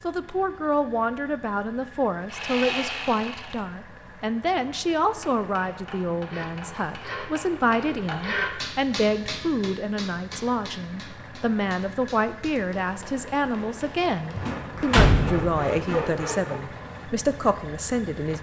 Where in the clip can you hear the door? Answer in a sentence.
You can hear the door from 14.3 to 16.0 s.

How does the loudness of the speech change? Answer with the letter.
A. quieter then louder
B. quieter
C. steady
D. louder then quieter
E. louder
C.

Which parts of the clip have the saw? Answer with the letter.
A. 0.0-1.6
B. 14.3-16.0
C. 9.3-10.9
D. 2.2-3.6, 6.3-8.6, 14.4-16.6
D.